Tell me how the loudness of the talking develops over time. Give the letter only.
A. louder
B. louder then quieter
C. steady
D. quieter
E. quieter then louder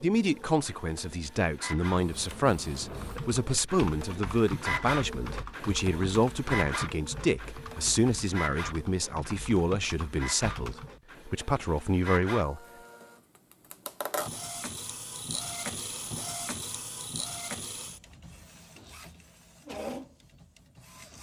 C.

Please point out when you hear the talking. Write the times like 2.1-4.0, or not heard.
0.0-12.6.